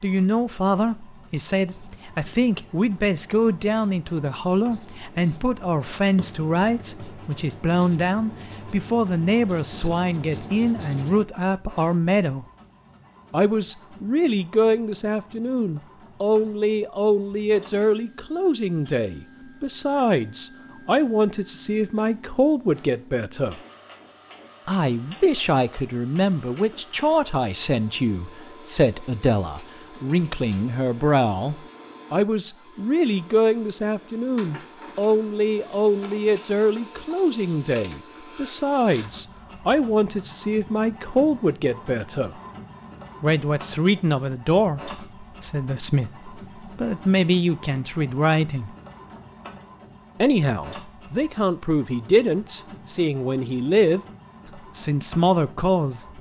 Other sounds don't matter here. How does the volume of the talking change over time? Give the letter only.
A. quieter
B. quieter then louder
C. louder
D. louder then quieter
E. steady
E.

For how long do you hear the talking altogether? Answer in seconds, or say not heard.
52 s.